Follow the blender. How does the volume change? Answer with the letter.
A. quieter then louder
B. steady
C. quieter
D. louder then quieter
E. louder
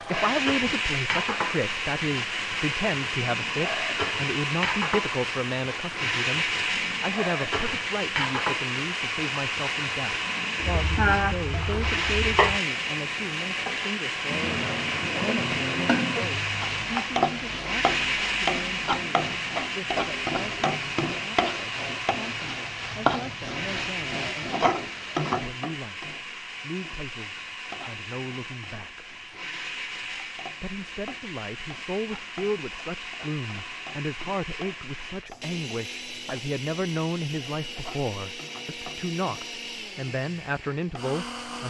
C.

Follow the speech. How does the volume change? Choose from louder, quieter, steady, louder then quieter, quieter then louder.
quieter then louder.